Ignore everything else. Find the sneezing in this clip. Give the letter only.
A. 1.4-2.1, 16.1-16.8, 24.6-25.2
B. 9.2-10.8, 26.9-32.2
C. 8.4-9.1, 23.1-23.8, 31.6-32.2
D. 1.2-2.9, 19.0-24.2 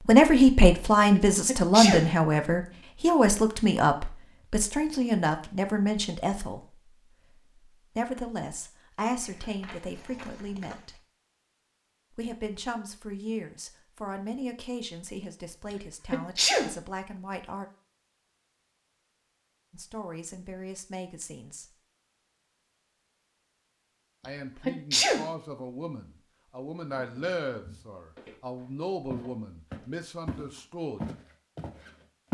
A.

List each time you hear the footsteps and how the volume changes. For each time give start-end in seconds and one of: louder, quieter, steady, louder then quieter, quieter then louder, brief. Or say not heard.
9.2-10.8 brief
26.9-32.2 louder.